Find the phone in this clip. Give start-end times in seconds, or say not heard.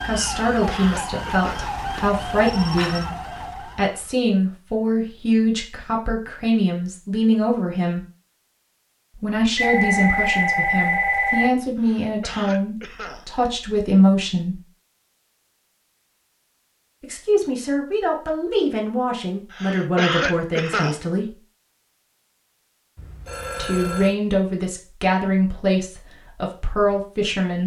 1.5-3.0, 9.6-11.5, 22.9-24.1.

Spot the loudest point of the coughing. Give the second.
20 s.